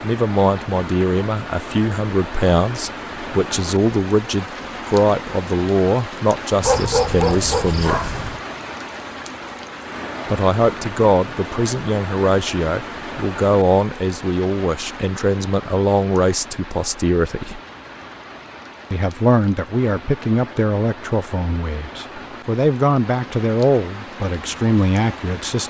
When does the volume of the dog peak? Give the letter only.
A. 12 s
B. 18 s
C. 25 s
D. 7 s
D.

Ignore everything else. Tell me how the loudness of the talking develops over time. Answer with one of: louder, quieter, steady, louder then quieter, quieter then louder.
steady.